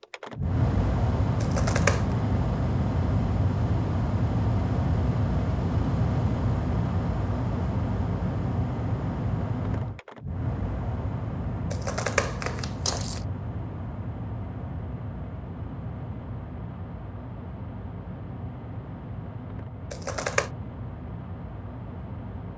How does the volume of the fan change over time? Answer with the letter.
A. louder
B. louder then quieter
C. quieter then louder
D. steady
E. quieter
E.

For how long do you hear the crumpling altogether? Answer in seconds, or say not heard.
3 s.